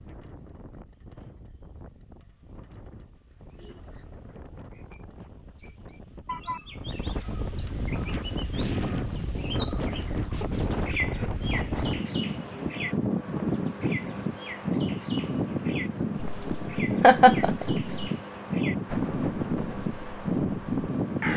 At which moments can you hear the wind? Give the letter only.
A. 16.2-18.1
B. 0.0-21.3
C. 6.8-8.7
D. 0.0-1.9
B.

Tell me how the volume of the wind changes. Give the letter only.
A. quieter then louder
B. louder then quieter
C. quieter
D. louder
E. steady
D.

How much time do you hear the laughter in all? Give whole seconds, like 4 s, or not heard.
2 s.